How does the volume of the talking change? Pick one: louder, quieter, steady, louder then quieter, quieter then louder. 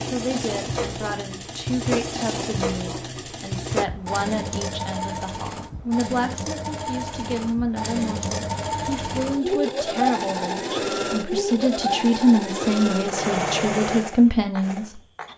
louder.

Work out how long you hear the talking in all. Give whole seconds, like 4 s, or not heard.
15 s.